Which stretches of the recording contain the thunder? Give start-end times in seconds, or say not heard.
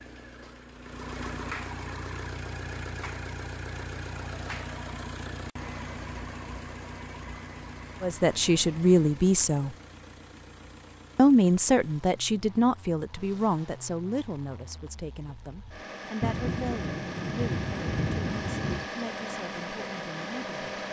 16.2-18.9.